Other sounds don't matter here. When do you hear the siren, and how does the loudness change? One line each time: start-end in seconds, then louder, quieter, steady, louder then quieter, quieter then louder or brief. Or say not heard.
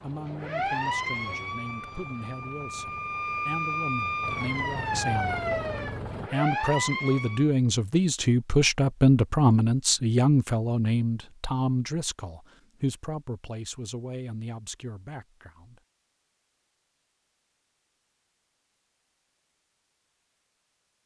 0.0-7.5 quieter then louder.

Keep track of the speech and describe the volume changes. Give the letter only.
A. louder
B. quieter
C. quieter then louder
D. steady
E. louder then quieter
E.